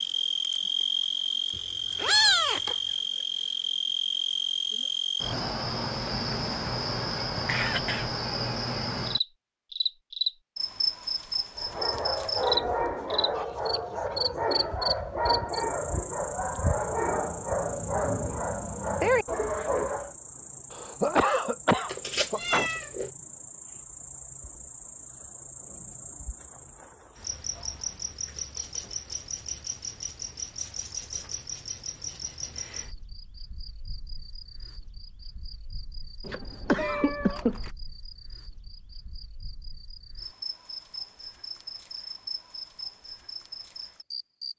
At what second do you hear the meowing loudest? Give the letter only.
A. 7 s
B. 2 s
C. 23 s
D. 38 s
B.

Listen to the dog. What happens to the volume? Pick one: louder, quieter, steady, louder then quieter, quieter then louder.
steady.